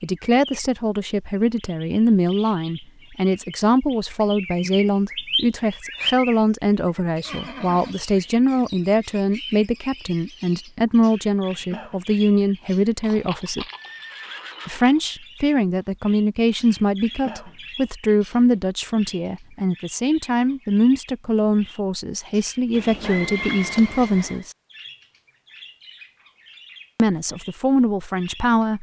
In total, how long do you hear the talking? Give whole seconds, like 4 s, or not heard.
25 s.